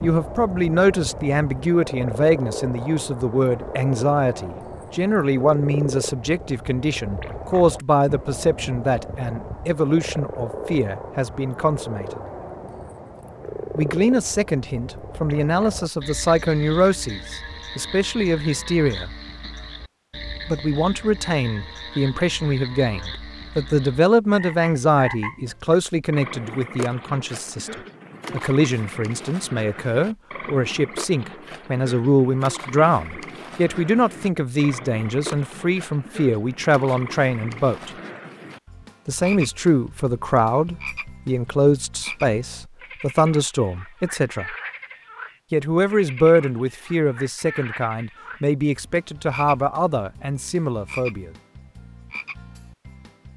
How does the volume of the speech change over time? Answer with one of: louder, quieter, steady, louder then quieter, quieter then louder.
steady.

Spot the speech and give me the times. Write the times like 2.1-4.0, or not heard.
0.0-12.2, 13.8-19.1, 20.4-37.9, 39.0-44.5, 45.5-51.3.